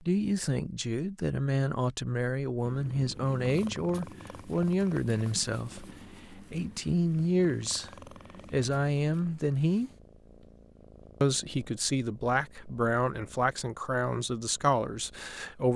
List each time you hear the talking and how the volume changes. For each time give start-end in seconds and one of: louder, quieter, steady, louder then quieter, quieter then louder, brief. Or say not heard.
0.0-7.9 steady
8.5-9.9 brief
11.2-15.7 steady.